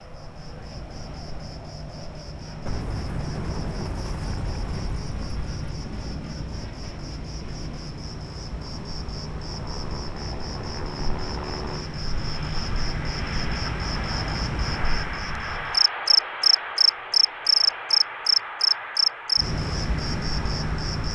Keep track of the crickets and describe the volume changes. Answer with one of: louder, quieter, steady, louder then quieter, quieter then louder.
louder.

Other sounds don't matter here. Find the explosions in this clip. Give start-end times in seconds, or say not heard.
2.6-6.5.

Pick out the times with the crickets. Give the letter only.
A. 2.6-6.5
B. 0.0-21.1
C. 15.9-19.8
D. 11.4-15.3
B.